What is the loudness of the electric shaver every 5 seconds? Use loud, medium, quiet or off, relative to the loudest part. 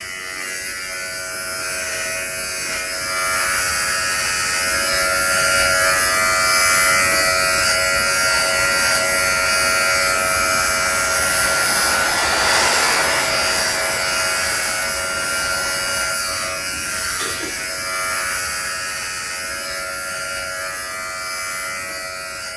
medium, loud, loud, medium, medium.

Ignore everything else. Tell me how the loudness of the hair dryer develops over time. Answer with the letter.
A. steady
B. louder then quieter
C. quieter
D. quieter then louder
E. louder
B.